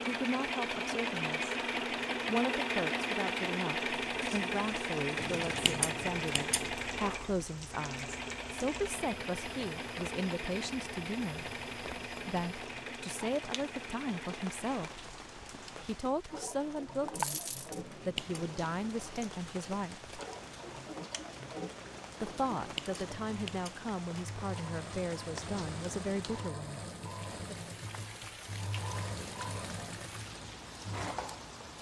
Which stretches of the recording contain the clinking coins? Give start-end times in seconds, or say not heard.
17.1-17.8.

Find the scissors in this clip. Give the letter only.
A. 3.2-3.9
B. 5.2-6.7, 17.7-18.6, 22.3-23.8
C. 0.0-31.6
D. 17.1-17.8
B.